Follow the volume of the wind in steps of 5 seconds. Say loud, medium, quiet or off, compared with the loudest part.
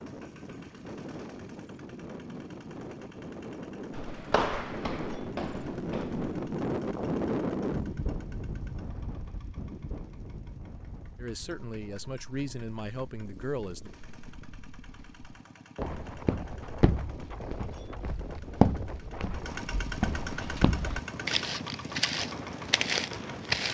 medium, loud, quiet, medium, medium.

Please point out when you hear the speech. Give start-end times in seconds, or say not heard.
11.2-13.9.